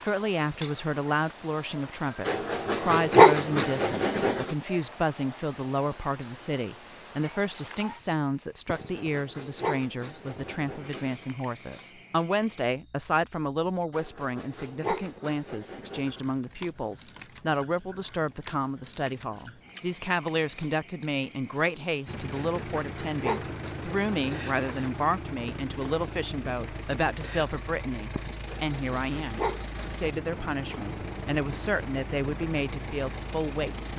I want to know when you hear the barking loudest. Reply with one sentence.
The loudest moment of the barking is at 3 seconds.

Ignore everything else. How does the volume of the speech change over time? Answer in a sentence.
The volume of the speech stays about the same.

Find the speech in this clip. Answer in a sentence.
You can hear the speech from 0.0 to 33.9 s.